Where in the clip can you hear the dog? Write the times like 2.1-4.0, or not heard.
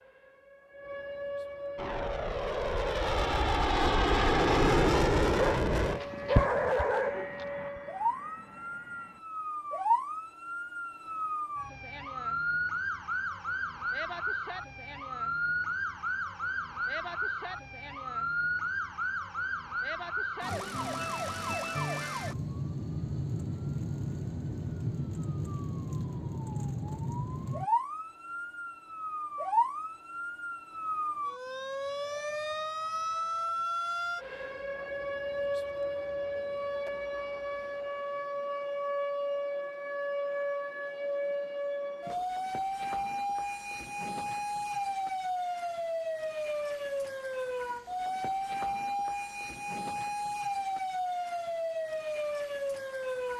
5.3-7.3.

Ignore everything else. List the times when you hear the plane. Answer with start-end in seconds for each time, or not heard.
1.8-9.2.